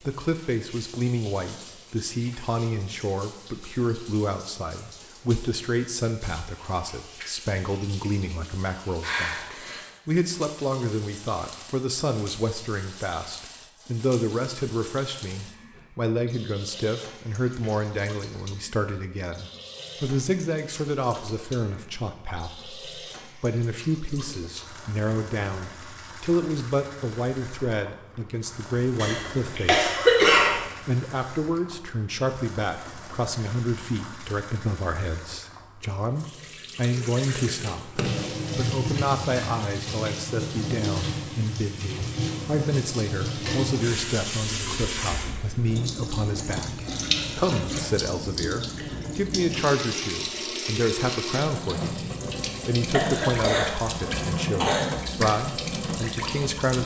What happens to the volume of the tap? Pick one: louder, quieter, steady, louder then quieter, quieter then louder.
louder.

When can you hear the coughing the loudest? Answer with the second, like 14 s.
30 s.